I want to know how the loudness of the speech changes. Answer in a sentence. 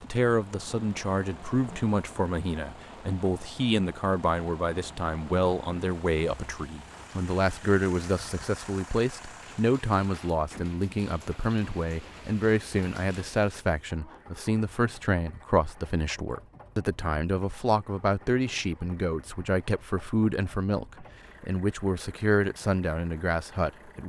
The loudness of the speech stays about the same.